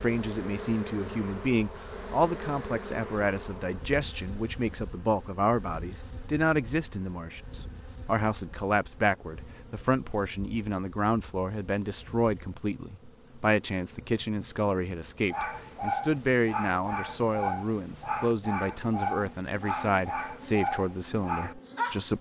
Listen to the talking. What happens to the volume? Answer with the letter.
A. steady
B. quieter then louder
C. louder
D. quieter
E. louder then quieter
A.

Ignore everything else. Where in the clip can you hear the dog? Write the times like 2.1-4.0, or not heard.
15.3-22.1.